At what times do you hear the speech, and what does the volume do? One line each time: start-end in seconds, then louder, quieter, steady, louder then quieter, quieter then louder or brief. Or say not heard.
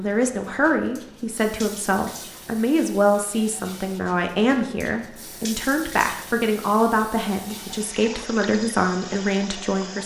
0.0-10.0 steady.